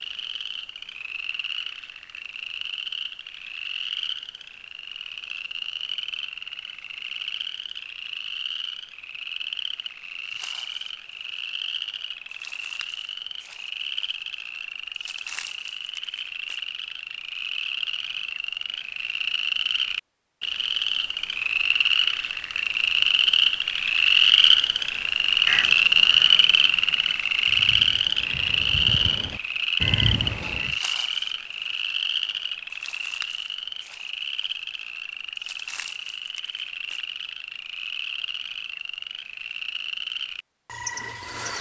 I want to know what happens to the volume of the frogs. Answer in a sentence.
The volume of the frogs goes up, then down.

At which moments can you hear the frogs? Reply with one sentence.
The frogs can be heard from 0.0 to 41.5 s.